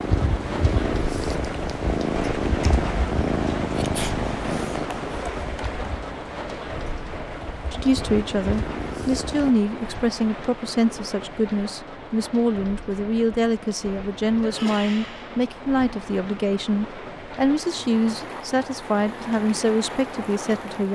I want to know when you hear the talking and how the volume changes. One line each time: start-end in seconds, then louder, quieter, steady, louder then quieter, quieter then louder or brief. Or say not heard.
7.7-20.8 steady.